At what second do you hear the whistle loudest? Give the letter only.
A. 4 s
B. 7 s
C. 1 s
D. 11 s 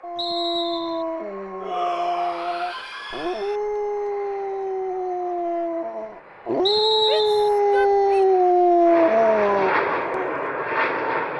B.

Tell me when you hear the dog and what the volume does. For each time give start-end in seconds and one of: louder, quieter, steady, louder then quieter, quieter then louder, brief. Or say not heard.
0.0-10.3 louder.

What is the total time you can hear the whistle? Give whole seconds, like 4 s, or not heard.
2 s.